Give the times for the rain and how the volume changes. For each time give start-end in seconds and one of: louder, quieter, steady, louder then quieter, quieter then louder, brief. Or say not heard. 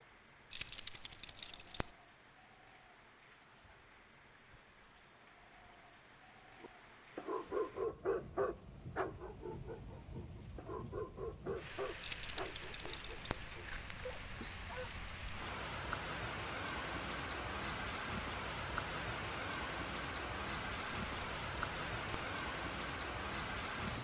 0.0-23.9 louder.